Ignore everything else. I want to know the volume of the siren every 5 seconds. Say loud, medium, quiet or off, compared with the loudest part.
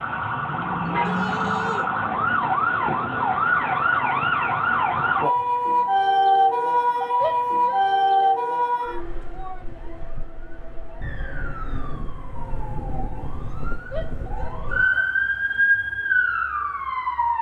loud, loud, medium, loud.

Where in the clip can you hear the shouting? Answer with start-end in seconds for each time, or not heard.
0.8-1.9, 7.2-9.6, 13.9-15.1.